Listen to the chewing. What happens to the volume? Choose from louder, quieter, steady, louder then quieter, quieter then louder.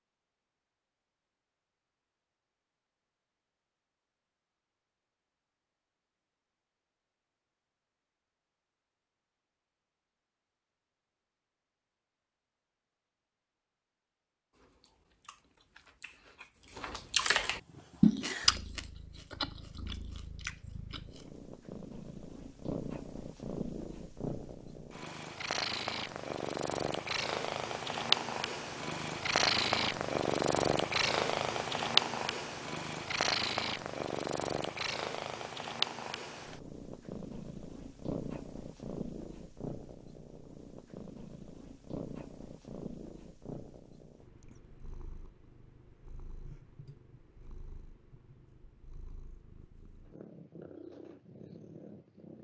louder then quieter.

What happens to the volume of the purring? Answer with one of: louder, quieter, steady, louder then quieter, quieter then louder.
louder then quieter.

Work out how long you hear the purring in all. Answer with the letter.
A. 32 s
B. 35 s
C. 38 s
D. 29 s
B.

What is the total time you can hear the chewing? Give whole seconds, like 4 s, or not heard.
7 s.